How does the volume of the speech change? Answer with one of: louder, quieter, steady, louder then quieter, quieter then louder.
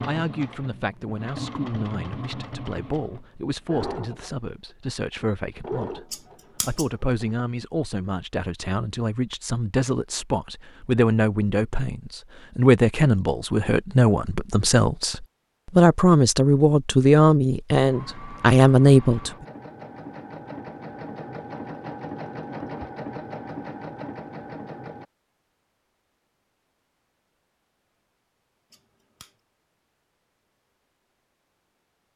louder.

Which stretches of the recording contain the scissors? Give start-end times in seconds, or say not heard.
6.1-6.9, 28.7-29.4.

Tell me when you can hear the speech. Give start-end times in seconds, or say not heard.
0.0-19.3.